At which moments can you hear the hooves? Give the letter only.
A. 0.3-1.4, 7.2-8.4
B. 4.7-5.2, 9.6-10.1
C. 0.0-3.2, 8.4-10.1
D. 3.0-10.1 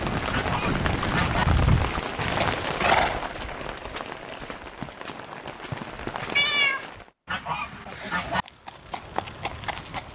C.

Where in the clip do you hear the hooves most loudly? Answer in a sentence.
The volume of the hooves peaks at 3 seconds.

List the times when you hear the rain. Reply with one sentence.
The rain can be heard from 0.0 to 7.1 s.